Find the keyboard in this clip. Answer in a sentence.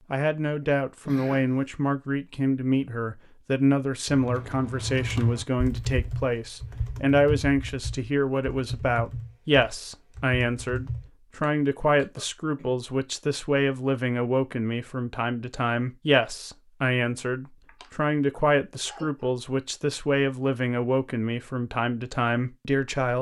The keyboard can be heard from 4.0 to 11.1 s.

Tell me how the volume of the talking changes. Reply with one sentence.
The volume of the talking stays about the same.